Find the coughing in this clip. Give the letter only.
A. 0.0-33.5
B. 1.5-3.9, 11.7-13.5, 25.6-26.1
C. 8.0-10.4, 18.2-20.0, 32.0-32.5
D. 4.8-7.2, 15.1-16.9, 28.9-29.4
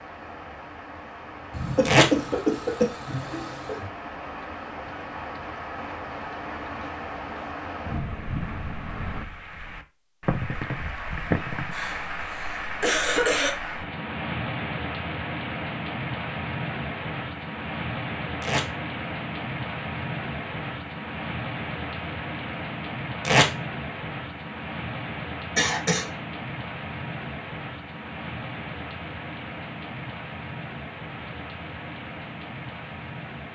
B.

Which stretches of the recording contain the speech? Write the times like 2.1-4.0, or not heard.
not heard.